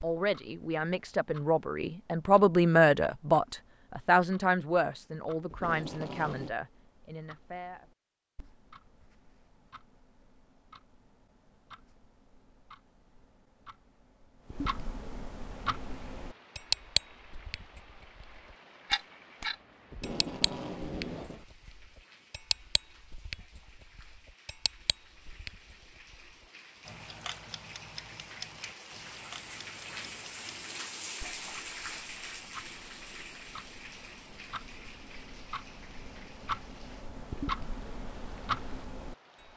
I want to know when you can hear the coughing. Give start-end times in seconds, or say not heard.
not heard.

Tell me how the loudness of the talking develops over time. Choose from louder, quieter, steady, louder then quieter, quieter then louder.
louder then quieter.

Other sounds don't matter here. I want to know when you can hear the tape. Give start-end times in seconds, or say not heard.
5.5-6.5, 19.9-21.4.